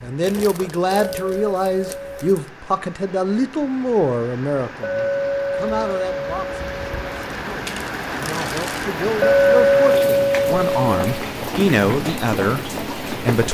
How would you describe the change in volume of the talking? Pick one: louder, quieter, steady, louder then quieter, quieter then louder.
quieter then louder.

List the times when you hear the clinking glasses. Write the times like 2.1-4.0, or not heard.
1.0-2.3, 4.8-7.0, 9.2-11.2.